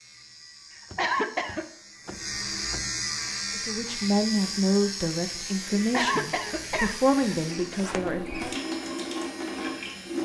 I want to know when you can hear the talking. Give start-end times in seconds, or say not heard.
3.5-8.6.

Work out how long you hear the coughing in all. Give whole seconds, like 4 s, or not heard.
2 s.